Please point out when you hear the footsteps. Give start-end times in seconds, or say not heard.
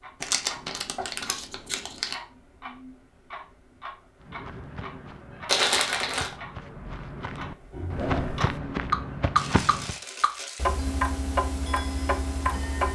4.2-9.9.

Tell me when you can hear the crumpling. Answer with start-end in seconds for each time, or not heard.
0.2-2.1, 5.5-6.3, 9.3-10.8.